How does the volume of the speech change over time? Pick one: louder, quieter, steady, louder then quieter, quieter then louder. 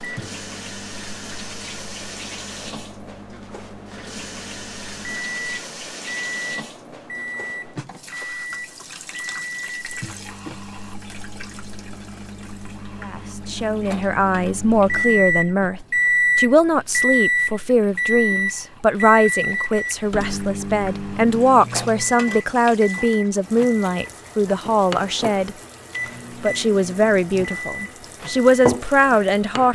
steady.